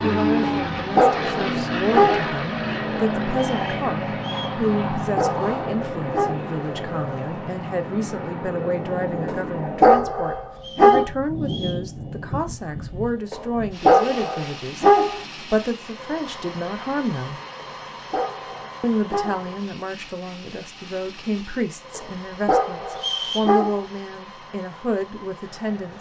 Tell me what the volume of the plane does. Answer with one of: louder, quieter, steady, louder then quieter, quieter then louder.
quieter.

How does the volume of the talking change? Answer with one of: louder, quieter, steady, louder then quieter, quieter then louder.
steady.